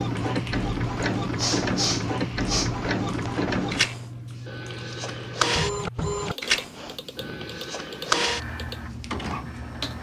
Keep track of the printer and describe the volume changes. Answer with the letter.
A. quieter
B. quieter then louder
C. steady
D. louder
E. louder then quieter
C.